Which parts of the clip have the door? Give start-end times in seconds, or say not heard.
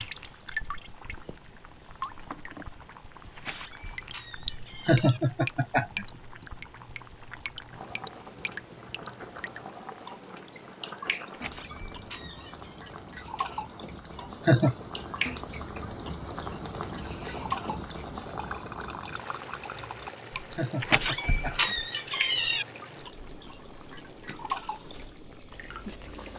3.4-5.2, 11.3-12.8, 20.8-22.6.